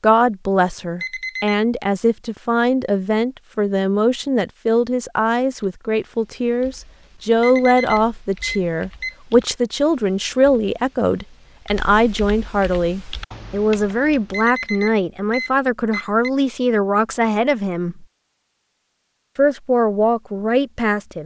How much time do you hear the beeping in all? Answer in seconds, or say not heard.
4 s.